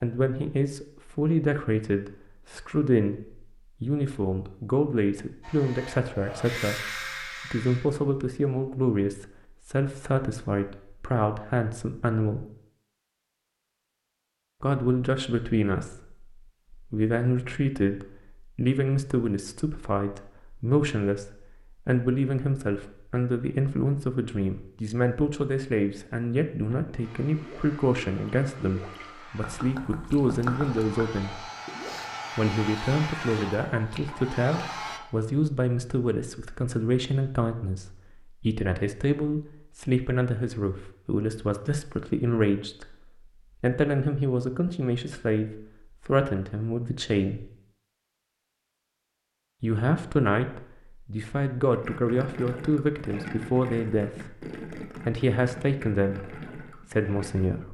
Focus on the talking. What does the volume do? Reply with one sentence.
The loudness of the talking stays about the same.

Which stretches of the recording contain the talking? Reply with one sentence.
You can hear the talking from 0.0 to 12.4 s, from 14.6 to 31.4 s, from 32.4 to 43.0 s, from 43.6 to 47.5 s and from 49.6 to 57.6 s.